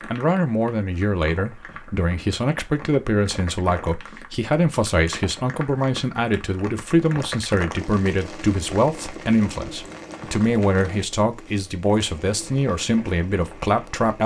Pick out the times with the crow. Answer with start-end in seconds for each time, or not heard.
not heard.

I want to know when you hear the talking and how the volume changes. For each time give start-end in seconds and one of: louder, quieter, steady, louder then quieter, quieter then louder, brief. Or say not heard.
0.1-14.2 steady.